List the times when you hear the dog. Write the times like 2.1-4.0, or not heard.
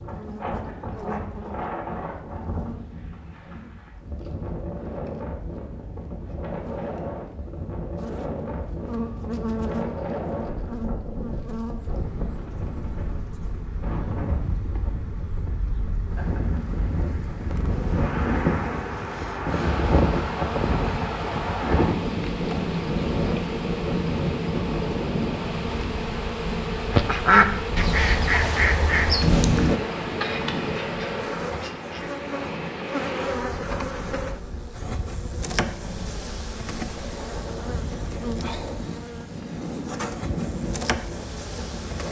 not heard.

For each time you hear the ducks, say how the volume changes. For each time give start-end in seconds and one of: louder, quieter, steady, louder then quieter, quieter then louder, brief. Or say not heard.
26.9-32.1 quieter.